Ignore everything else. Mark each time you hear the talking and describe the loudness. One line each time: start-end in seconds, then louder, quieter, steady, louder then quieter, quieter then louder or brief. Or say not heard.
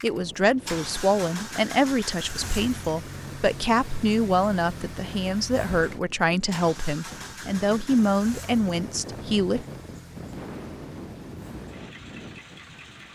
0.0-9.7 steady.